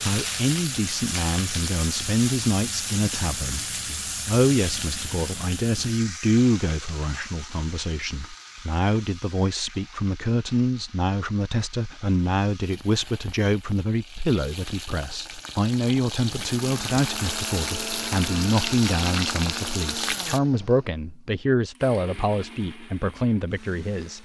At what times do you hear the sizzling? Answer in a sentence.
You can hear the sizzling from 0.0 to 20.4 s.